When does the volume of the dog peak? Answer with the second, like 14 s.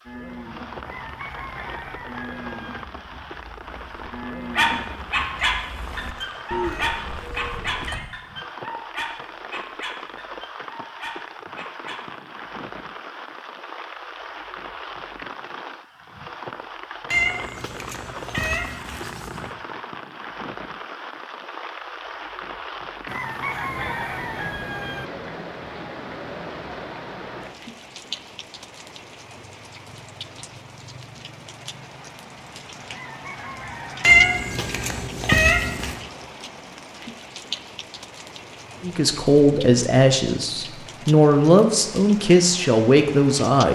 5 s.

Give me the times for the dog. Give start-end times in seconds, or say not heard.
4.5-12.1.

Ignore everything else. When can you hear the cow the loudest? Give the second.
7 s.